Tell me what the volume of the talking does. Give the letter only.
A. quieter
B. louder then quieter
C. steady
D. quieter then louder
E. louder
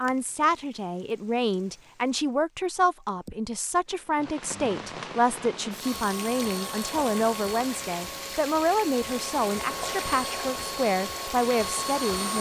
C.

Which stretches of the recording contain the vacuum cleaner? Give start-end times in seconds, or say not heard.
5.8-12.3.